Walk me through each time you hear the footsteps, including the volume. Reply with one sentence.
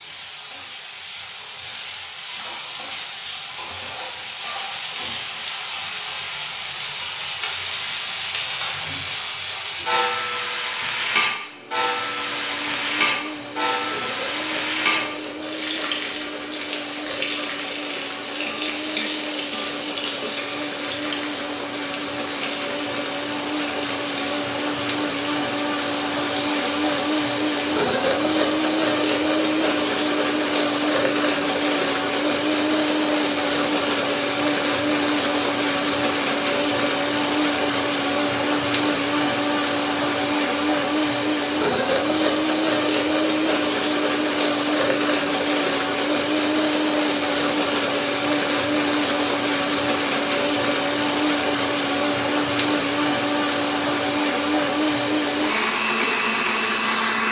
The footsteps can't be heard in this clip.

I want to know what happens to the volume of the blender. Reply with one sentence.
The loudness of the blender goes up.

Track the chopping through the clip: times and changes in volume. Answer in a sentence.
The chopping can't be heard in this clip.